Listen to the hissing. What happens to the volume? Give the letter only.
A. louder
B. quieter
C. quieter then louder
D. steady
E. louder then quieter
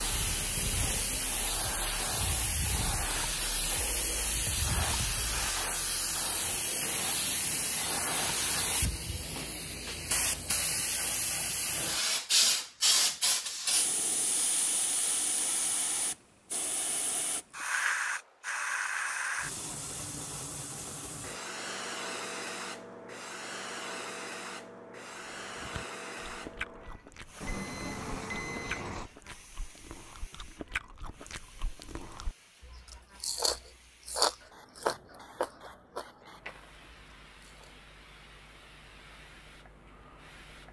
B.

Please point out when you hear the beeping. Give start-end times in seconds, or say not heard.
6.8-8.8, 27.4-29.1.